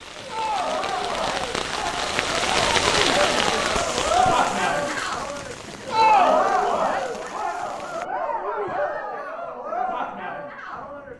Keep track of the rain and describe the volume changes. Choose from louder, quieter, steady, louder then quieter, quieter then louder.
louder then quieter.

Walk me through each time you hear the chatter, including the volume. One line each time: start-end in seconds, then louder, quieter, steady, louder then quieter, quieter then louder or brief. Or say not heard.
0.1-11.1 louder then quieter.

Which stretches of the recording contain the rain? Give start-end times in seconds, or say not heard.
0.0-8.1.